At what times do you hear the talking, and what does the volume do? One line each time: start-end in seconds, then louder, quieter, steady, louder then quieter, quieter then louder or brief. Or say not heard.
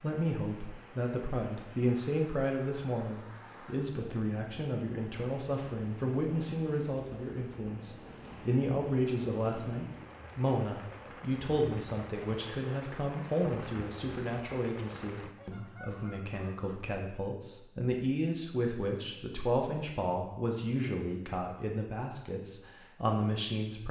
0.0-23.8 steady.